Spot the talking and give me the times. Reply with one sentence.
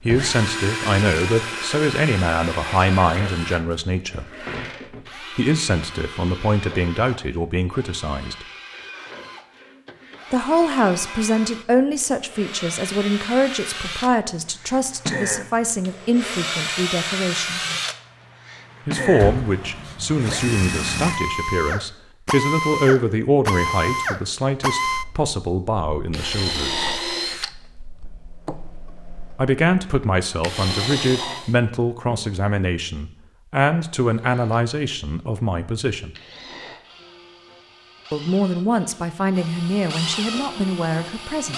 You can hear the talking from 0.0 to 4.5 s, from 5.3 to 8.4 s, from 10.3 to 17.6 s, from 18.9 to 26.9 s, from 29.4 to 36.1 s and from 38.1 to 41.5 s.